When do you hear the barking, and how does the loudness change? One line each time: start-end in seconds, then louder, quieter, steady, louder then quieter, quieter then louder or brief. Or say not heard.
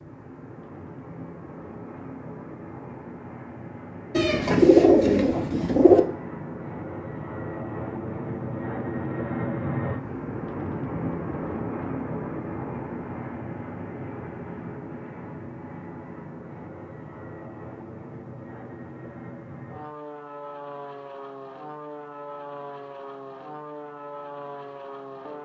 not heard.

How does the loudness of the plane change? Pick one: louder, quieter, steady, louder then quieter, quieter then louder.
louder then quieter.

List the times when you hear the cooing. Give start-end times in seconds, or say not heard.
4.2-6.0.